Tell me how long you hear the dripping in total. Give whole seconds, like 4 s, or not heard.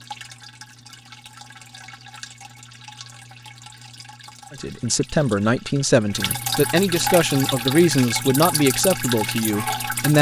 10 s.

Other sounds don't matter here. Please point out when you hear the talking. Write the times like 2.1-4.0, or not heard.
4.5-10.1.